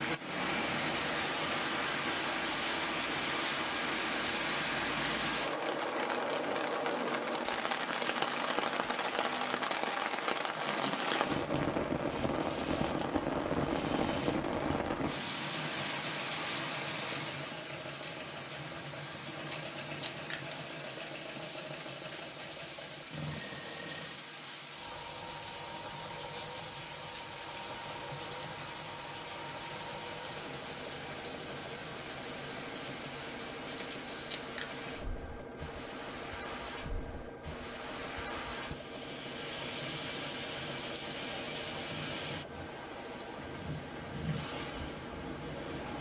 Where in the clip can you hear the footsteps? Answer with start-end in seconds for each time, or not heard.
not heard.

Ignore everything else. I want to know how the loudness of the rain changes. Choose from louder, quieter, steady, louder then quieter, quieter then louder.
quieter.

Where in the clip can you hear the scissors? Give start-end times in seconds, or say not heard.
10.3-11.4, 19.5-20.6, 33.8-34.8.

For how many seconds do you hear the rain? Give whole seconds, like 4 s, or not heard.
46 s.